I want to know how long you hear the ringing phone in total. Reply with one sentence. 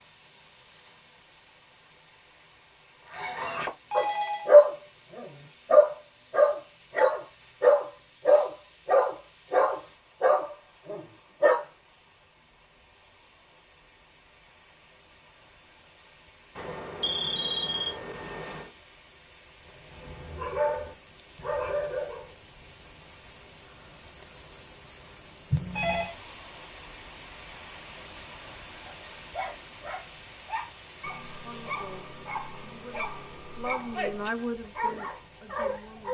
You can hear the ringing phone for 4 seconds altogether.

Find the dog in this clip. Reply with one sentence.
The dog can be heard from 3.1 to 11.7 s, from 19.9 to 22.3 s and from 28.9 to 36.0 s.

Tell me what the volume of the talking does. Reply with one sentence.
The volume of the talking goes up, then down.